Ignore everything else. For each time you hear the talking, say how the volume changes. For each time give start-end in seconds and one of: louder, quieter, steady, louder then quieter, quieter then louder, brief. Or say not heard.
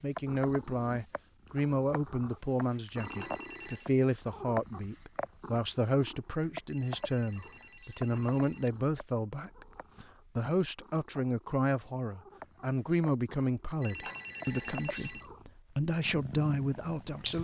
0.0-17.3 steady.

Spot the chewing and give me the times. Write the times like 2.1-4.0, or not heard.
not heard.